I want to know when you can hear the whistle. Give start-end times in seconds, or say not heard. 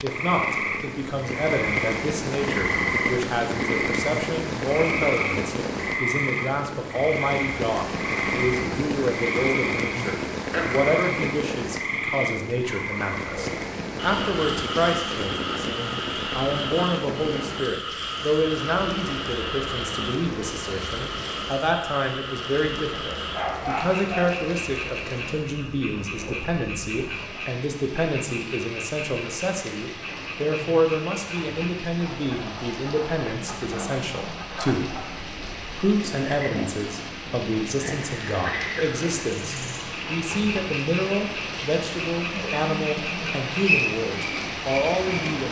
43.2-43.9.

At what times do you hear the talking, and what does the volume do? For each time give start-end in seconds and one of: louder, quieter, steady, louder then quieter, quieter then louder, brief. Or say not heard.
0.0-45.4 steady.